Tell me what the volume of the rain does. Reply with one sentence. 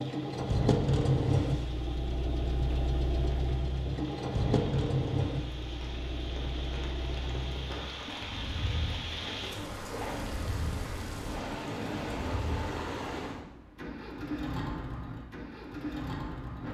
The loudness of the rain goes up.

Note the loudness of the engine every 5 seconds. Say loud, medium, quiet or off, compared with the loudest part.
loud, medium, medium, medium.